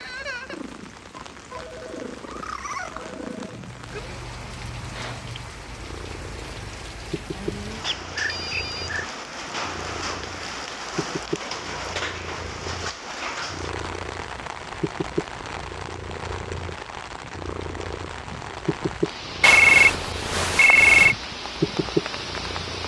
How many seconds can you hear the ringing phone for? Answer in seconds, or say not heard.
4 s.